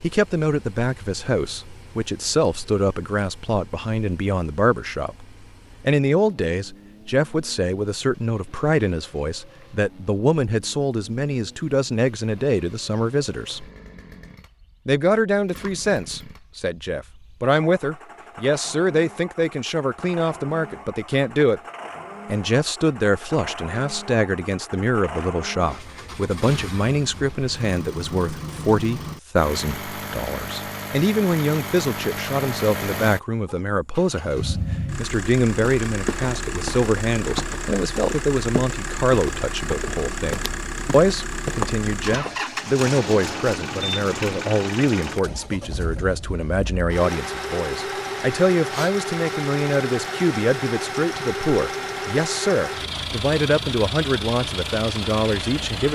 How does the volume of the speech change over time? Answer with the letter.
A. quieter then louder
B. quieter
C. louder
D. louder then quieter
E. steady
E.